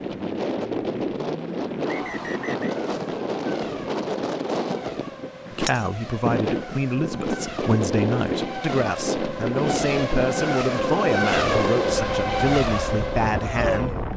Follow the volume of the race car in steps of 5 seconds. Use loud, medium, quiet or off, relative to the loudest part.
quiet, medium, loud.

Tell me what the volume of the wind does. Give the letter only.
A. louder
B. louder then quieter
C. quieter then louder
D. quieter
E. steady
E.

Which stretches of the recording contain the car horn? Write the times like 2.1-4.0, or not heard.
not heard.